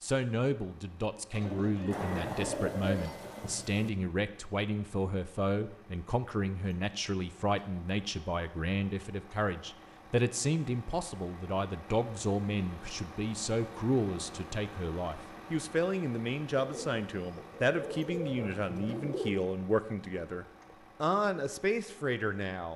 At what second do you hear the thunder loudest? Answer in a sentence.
The volume of the thunder peaks at 2 seconds.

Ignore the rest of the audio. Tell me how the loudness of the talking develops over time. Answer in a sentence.
The loudness of the talking stays about the same.